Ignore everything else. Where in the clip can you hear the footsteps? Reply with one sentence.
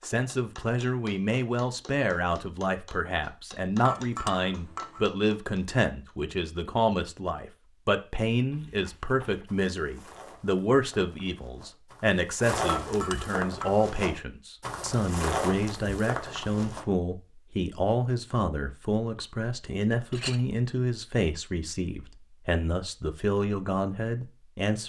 You can hear the footsteps from 8.5 to 16.9 s.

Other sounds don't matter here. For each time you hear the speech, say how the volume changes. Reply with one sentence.
The speech can be heard from 0.0 to 24.8 s, at a steady volume.